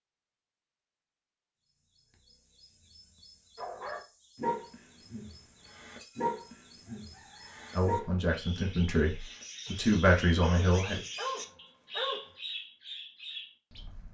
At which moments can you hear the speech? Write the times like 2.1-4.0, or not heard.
7.8-11.0.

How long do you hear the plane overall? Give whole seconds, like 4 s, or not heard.
not heard.